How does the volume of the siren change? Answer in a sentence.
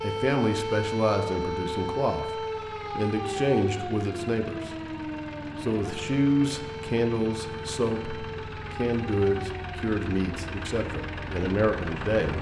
The loudness of the siren goes down.